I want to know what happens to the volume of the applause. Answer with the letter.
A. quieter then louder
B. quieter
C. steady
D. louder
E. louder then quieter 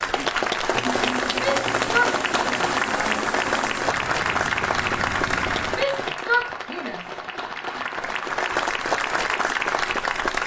A.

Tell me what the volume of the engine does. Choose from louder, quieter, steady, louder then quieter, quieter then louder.
steady.